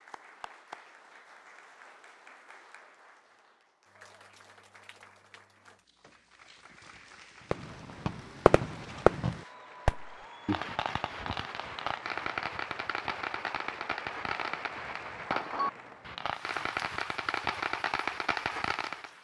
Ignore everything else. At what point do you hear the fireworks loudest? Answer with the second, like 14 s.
9 s.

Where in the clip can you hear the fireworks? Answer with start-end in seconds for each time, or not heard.
7.5-19.1.